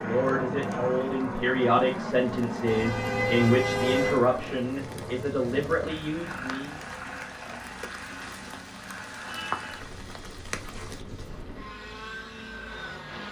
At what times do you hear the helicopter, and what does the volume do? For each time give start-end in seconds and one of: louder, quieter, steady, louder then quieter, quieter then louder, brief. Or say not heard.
0.0-13.2 quieter.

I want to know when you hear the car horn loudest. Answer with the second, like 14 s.
4 s.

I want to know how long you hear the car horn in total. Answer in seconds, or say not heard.
2 s.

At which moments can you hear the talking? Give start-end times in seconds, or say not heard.
0.0-6.8.